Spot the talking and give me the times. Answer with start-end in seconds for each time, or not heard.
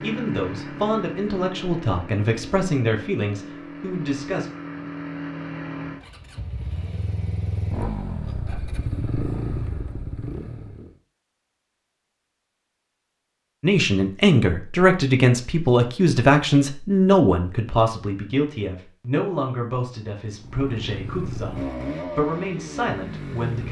0.0-4.5, 13.6-23.6.